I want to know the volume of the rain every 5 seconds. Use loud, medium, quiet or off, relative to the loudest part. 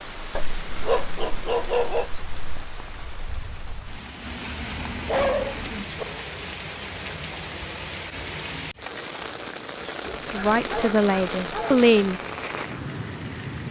medium, loud, loud.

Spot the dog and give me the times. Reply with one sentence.
The dog can be heard from 0.3 to 2.8 s, from 5.0 to 6.0 s and from 10.1 to 11.8 s.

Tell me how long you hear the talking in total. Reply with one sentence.
You can hear the talking for 2 seconds altogether.